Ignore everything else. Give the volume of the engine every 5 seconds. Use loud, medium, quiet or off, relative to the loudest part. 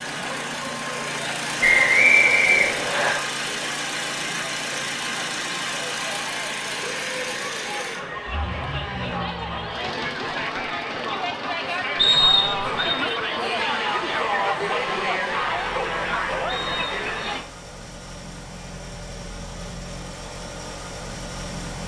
loud, loud, medium, medium, medium.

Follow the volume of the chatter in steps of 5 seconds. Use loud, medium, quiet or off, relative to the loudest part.
medium, medium, loud, loud, off.